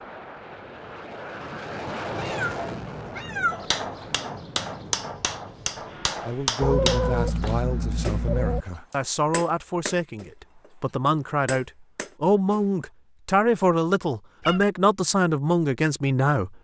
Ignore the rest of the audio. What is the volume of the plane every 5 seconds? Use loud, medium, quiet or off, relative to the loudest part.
loud, medium, off, off.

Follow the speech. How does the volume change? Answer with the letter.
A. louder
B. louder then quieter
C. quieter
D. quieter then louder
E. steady
A.